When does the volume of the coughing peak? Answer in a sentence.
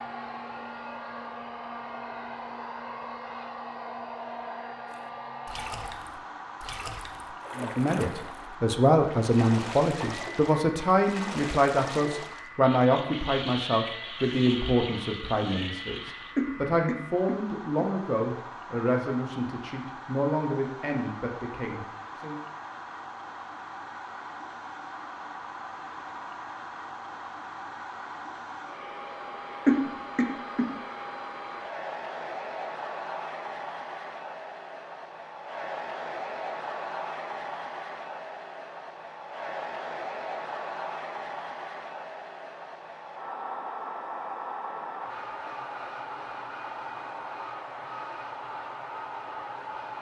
The volume of the coughing peaks at 30 seconds.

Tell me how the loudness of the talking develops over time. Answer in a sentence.
The volume of the talking goes down.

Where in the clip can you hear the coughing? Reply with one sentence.
You can hear the coughing from 16.4 to 17.9 s and from 29.6 to 30.7 s.